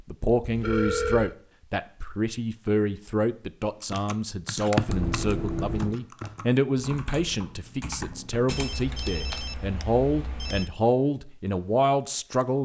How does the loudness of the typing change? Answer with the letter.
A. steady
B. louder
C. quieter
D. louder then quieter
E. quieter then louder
C.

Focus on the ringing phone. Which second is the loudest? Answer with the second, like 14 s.
1 s.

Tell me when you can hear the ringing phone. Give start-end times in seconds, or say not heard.
0.4-1.4, 4.8-6.0, 8.4-10.7.